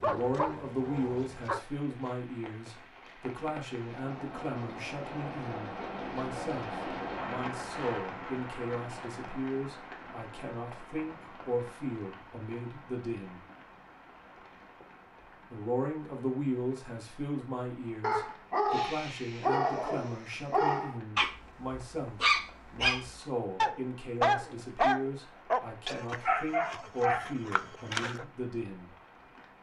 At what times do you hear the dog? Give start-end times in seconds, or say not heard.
0.0-1.6, 18.0-28.2.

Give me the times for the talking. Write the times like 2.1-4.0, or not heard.
0.0-13.4, 15.5-28.9.